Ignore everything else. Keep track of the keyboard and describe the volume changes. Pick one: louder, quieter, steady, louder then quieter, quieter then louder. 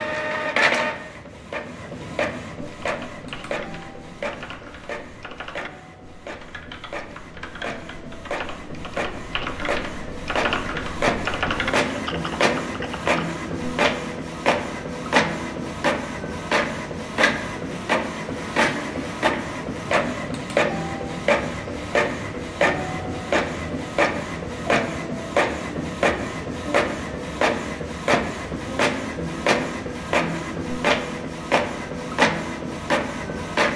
louder.